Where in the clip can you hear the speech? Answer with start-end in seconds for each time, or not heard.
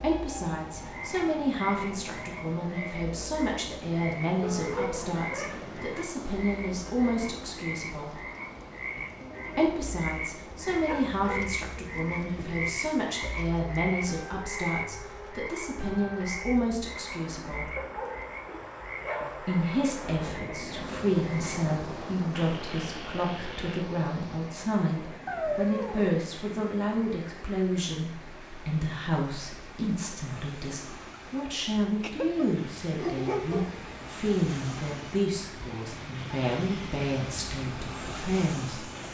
0.0-8.2, 9.6-17.7, 19.4-38.9.